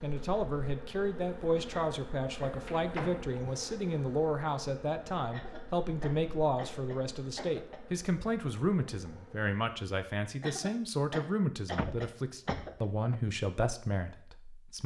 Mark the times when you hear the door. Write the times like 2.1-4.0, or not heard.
2.6-3.4, 11.8-13.2.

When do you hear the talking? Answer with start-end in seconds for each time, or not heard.
0.0-14.8.